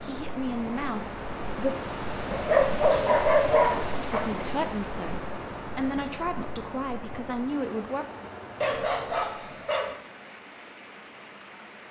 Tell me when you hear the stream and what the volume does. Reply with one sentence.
You can hear the stream from 0.0 to 11.8 s, getting quieter.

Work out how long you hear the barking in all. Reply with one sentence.
The barking can be heard for 3 seconds in total.